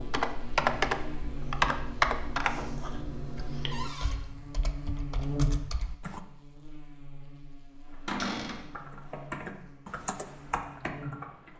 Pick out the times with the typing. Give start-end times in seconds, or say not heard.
0.0-6.2, 7.9-11.5.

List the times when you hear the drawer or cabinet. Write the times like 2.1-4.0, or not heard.
3.7-4.2, 8.1-8.6.